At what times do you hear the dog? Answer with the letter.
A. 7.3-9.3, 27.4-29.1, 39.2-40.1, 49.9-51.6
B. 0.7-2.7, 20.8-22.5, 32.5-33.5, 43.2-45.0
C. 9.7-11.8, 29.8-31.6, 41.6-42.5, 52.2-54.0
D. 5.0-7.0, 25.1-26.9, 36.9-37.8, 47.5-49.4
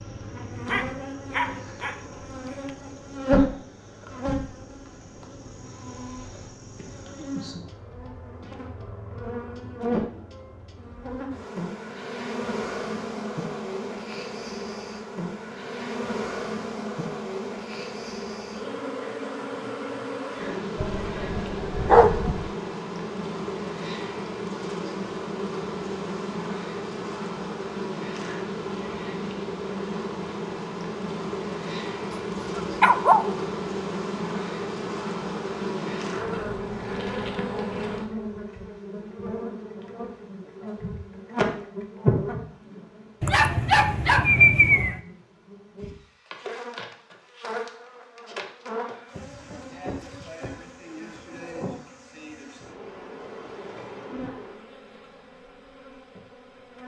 B.